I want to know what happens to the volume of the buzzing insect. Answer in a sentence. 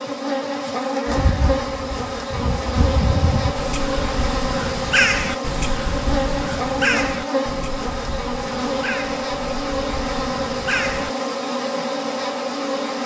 The loudness of the buzzing insect stays about the same.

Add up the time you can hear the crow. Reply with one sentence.
You can hear the crow for 10 seconds altogether.